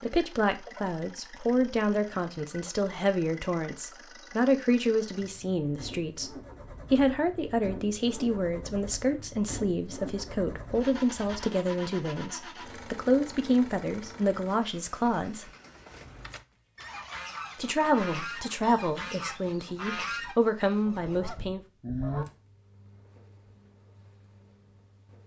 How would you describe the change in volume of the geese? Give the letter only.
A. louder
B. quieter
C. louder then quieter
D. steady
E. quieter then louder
C.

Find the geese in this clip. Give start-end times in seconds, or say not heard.
16.8-22.2.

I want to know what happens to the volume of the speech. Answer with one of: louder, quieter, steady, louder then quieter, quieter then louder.
steady.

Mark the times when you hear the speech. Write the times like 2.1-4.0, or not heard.
0.0-15.5, 17.6-21.6.